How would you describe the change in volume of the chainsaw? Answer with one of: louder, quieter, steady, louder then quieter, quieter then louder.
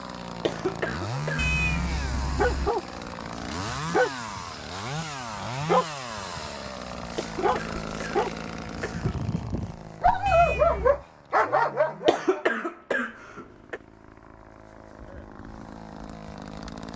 quieter.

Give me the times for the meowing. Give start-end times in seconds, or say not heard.
1.4-2.7, 10.2-11.1.